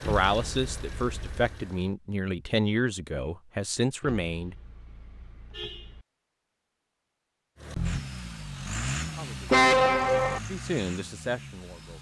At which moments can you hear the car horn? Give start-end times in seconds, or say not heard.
0.0-1.6, 4.0-6.0, 9.5-10.4.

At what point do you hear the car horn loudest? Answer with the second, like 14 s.
10 s.